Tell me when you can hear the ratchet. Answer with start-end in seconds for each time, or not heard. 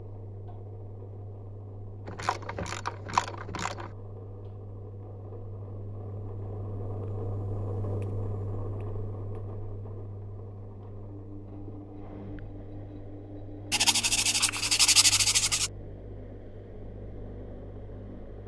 2.0-3.9.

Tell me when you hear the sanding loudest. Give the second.
15 s.